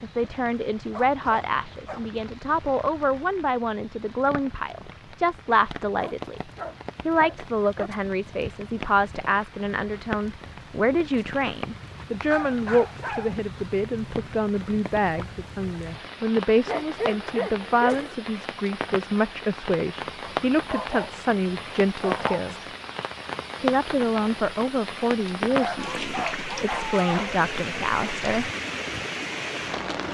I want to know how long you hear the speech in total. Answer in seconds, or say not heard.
27 s.